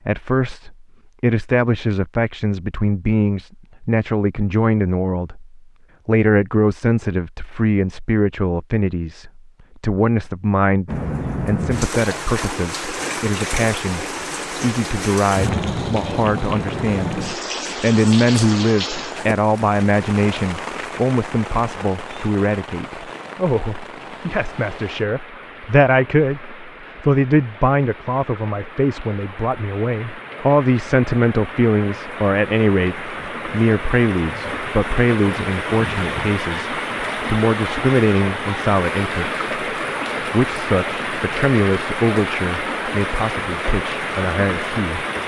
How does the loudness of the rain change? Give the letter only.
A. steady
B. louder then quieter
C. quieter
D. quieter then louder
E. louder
D.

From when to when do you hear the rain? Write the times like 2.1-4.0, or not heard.
10.8-45.2.